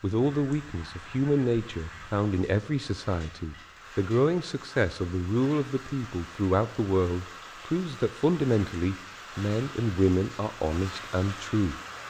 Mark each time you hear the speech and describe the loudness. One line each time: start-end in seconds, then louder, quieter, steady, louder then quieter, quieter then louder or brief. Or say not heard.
0.0-12.0 steady.